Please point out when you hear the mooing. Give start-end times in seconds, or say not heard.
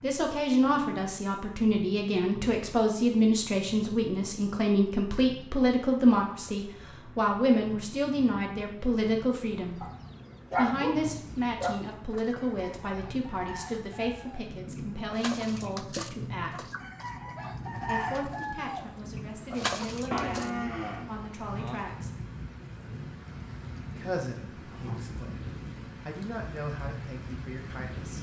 20.1-21.9.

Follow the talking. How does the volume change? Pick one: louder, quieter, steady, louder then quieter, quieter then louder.
quieter.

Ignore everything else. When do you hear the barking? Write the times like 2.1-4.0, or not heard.
9.8-11.8.